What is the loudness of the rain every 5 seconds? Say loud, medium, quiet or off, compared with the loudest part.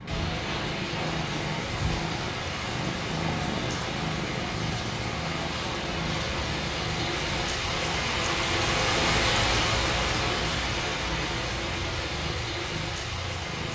medium, loud, loud.